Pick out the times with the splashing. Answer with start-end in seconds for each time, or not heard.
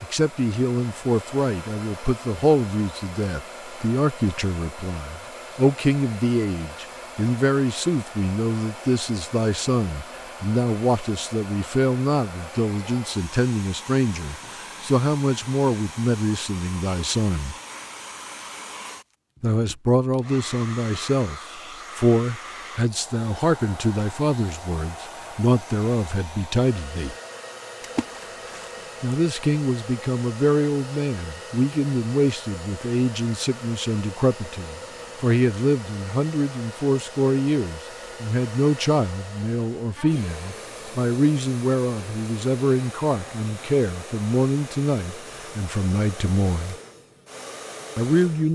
27.8-29.1.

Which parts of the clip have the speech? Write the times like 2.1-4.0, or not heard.
0.0-17.6, 19.4-27.1, 29.0-46.8, 48.0-48.5.